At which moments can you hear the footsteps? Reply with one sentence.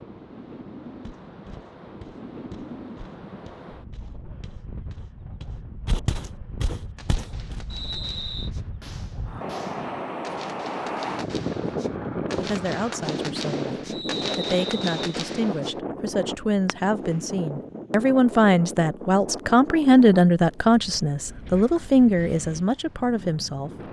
The footsteps can be heard from 1.0 to 7.6 s.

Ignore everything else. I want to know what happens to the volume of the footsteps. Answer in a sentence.
The volume of the footsteps goes down, then up.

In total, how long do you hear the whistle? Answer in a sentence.
You can hear the whistle for 2 seconds altogether.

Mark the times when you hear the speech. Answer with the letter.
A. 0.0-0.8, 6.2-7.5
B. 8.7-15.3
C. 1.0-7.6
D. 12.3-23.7
D.